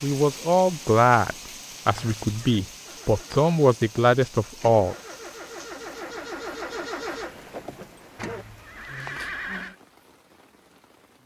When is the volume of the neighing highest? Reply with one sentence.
The volume of the neighing peaks at 9 seconds.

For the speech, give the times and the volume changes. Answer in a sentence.
The speech can be heard from 0.0 to 5.0 s, getting quieter then louder.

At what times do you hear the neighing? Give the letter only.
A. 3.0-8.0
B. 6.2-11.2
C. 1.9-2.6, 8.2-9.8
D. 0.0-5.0
C.